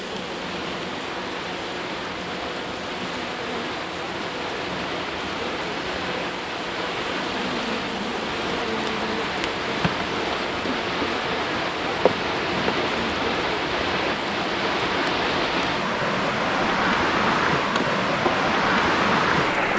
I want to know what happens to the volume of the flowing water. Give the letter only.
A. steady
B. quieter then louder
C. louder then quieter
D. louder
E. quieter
D.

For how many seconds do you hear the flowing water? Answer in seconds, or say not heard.
20 s.